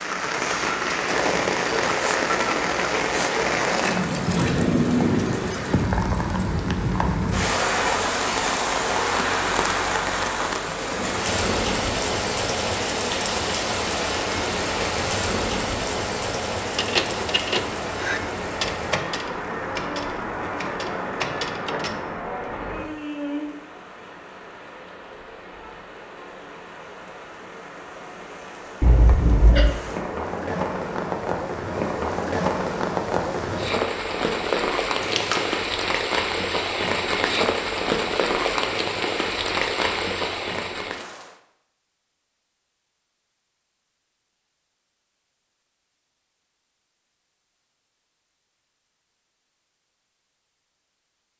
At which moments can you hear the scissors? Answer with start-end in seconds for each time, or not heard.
3.7-4.5, 28.8-29.7, 35.0-35.5.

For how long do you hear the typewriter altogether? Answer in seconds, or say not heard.
5 s.